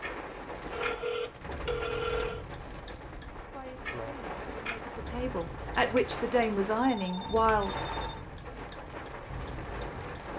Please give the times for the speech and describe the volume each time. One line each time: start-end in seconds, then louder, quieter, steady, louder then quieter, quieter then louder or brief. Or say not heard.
3.5-7.8 louder.